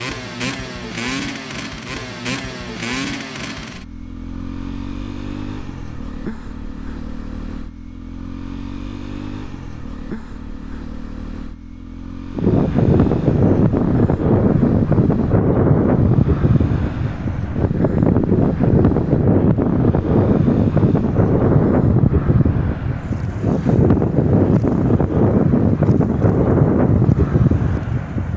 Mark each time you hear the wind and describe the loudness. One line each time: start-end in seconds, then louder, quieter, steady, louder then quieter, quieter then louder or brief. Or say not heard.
12.3-28.3 steady.